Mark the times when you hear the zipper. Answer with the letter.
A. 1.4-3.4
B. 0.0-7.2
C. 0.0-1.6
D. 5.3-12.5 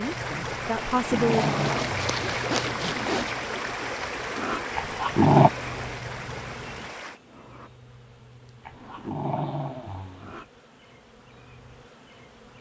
A.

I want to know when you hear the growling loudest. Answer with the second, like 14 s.
5 s.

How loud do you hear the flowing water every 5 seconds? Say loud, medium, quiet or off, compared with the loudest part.
loud, medium, off.